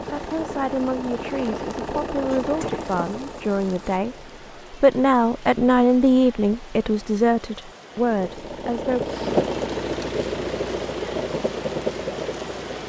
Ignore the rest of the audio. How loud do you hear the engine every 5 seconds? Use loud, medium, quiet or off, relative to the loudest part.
medium, loud, loud.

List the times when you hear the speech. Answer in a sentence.
You can hear the speech from 0.0 to 9.1 s.